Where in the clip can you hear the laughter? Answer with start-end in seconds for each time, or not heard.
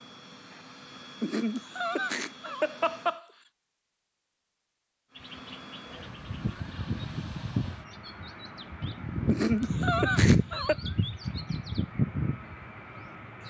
1.2-3.2, 9.2-10.8.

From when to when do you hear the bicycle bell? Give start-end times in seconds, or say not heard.
not heard.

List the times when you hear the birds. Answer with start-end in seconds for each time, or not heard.
5.2-13.4.